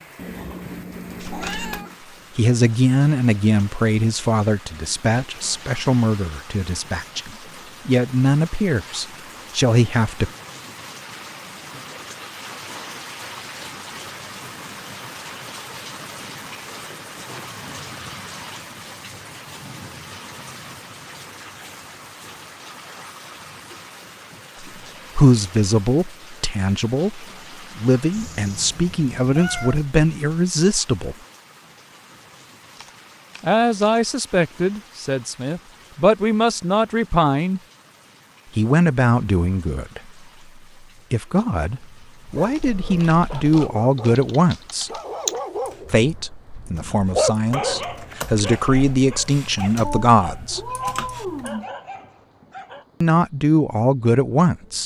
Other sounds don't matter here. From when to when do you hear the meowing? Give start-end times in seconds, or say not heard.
0.1-2.0, 28.1-29.9, 49.8-51.6.